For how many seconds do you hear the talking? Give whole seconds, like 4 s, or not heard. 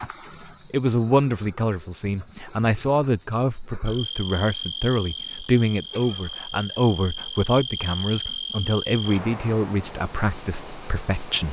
11 s.